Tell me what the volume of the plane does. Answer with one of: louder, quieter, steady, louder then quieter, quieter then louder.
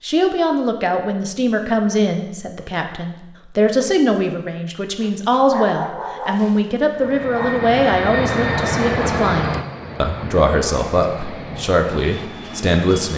quieter.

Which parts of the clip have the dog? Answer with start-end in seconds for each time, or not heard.
5.0-7.5.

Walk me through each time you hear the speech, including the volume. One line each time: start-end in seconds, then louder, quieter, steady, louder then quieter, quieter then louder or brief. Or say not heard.
0.0-13.1 steady.